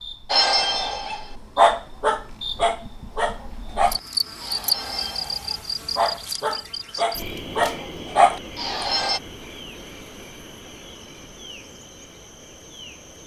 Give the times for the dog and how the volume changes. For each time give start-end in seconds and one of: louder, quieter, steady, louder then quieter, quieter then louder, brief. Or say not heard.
0.3-9.2 quieter then louder.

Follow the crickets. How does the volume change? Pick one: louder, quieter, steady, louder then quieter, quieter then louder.
louder then quieter.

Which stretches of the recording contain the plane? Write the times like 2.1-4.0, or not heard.
not heard.